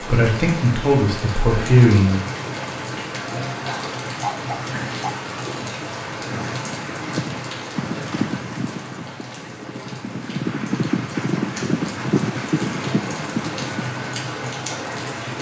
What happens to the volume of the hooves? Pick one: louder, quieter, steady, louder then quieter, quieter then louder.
quieter then louder.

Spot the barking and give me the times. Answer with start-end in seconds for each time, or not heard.
3.6-5.1.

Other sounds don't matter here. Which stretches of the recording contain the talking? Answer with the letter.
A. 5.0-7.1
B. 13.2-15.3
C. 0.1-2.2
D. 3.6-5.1
C.